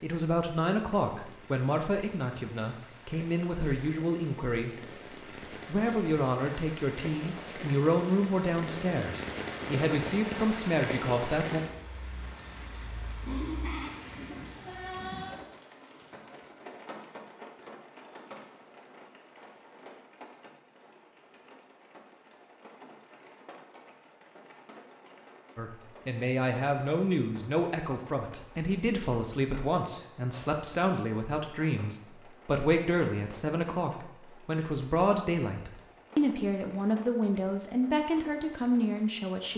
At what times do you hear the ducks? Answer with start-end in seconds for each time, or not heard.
not heard.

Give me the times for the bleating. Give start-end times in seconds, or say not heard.
13.2-15.4.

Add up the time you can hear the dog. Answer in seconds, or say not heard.
not heard.